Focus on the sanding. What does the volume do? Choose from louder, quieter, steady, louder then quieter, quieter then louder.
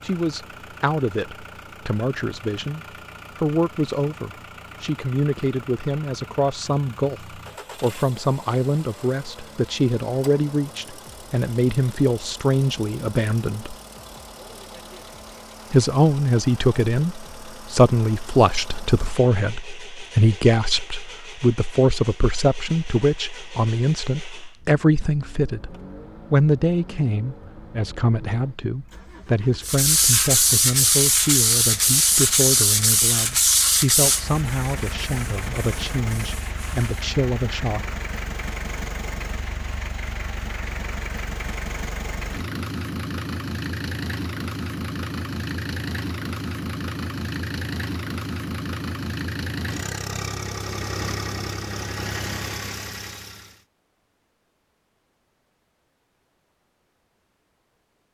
quieter.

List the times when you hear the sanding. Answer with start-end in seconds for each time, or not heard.
29.6-37.1.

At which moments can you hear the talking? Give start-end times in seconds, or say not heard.
0.0-13.8, 15.7-37.9.